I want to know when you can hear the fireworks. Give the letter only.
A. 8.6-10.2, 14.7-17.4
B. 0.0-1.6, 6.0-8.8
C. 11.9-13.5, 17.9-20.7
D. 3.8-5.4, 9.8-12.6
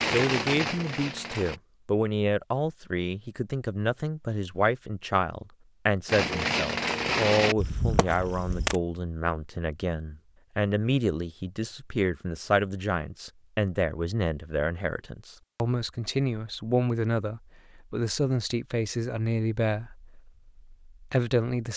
B.